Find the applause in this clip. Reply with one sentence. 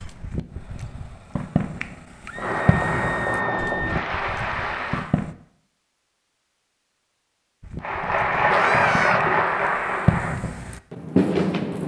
You can hear the applause from 2.4 to 5.0 s and from 7.8 to 10.4 s.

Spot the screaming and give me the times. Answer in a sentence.
You can hear the screaming from 2.2 to 3.9 s and from 8.5 to 9.2 s.